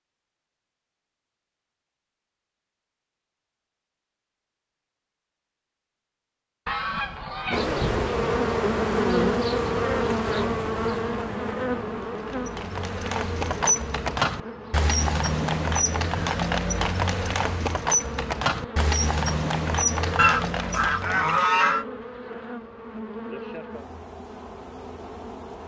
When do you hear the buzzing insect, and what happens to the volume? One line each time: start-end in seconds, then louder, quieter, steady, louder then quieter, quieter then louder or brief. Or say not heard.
7.5-25.6 quieter.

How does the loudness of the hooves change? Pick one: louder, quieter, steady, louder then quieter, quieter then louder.
steady.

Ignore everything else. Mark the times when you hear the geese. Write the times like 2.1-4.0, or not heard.
6.7-8.0, 20.1-21.9.